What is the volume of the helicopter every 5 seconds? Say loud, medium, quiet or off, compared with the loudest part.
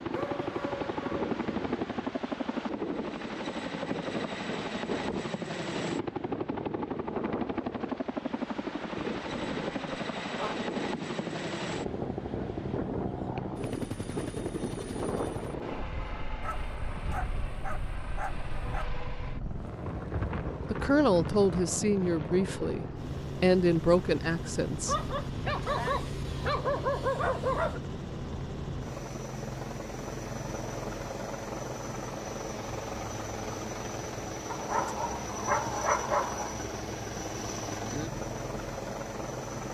loud, loud, loud, medium, loud, loud, loud, loud.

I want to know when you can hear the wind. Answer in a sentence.
You can hear the wind from 0.0 to 21.6 s.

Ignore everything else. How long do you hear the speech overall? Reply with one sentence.
You can hear the speech for 4 seconds altogether.